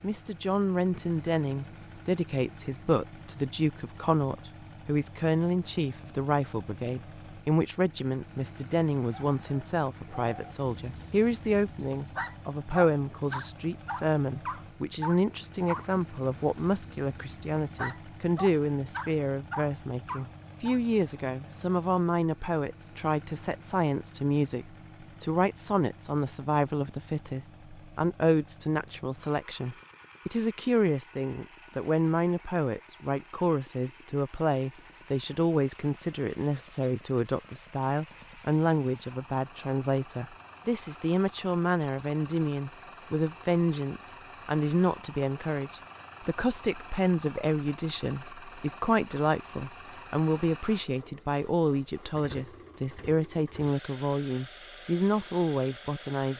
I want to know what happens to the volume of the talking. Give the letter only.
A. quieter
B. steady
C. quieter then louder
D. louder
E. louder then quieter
B.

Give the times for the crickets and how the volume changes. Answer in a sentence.
You can't hear the crickets here.